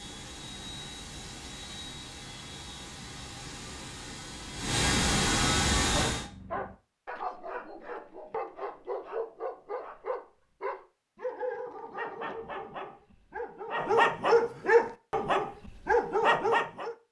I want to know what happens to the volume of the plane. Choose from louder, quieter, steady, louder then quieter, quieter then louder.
louder.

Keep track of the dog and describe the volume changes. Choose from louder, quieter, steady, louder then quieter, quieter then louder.
louder.